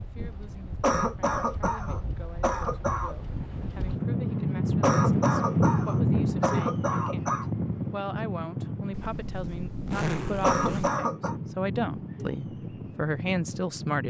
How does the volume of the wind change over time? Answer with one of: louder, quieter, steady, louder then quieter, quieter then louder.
louder then quieter.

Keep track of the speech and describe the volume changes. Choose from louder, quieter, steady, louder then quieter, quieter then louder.
louder.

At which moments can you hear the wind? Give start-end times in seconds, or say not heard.
0.0-14.0.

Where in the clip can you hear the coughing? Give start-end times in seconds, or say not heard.
0.8-3.1, 4.8-7.5, 10.4-11.3.